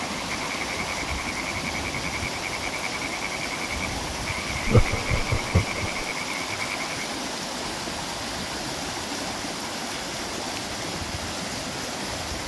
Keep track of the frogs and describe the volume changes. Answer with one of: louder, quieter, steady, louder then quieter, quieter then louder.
steady.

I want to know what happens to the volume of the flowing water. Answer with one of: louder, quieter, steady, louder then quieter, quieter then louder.
steady.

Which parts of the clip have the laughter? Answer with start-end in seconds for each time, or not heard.
4.7-6.0.